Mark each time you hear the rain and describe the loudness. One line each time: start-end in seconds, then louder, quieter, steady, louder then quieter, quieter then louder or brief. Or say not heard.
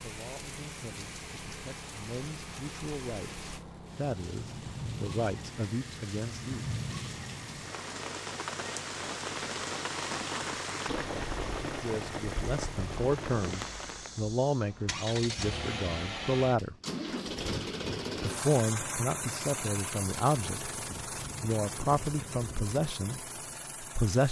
0.0-14.2 louder.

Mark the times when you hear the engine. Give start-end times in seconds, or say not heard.
0.0-24.2.